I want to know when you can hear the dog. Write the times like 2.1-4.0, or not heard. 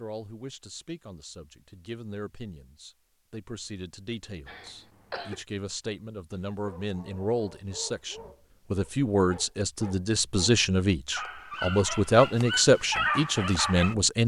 6.5-13.9.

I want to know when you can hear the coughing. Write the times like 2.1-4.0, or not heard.
4.5-5.4.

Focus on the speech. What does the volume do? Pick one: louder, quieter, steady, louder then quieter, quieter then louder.
louder.